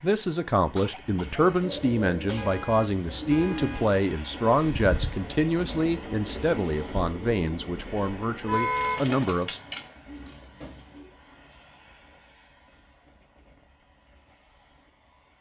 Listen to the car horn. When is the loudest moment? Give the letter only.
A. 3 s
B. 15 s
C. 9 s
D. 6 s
C.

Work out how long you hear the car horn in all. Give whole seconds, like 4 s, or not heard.
2 s.